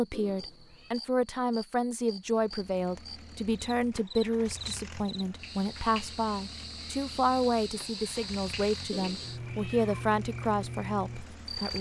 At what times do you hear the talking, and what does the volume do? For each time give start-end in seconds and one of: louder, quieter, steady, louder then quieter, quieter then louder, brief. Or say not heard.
0.0-11.7 steady.